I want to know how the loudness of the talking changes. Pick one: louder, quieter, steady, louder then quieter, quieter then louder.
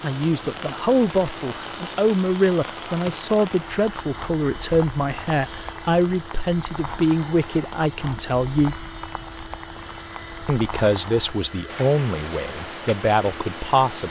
steady.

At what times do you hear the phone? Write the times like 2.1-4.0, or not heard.
not heard.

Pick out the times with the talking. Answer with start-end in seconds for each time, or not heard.
0.0-8.8, 10.4-14.0.